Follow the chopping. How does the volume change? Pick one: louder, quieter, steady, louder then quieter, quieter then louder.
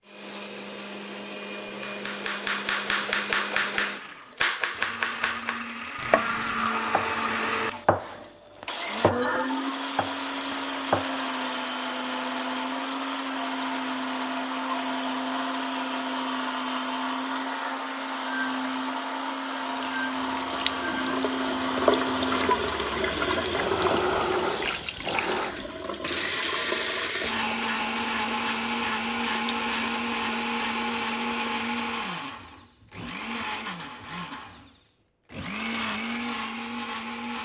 quieter.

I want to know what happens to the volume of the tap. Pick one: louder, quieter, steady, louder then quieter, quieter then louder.
quieter.